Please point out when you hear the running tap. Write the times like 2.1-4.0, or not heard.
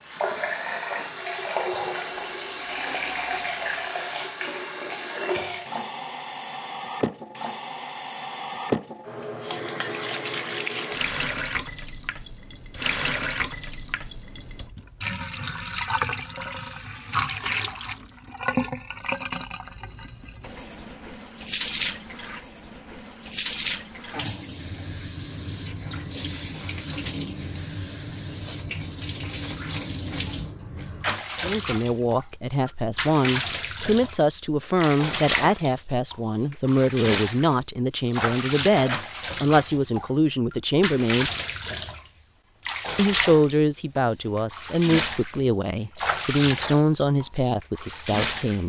0.0-48.6.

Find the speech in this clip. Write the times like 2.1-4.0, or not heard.
31.4-41.3, 43.0-48.6.